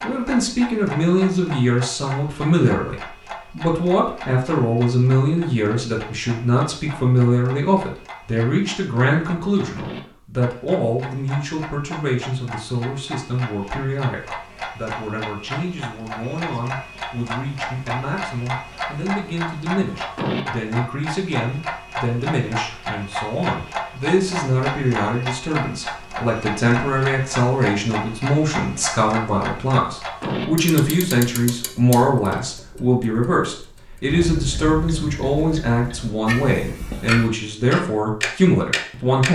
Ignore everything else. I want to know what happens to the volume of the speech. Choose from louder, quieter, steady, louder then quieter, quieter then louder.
quieter then louder.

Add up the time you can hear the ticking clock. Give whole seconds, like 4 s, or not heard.
39 s.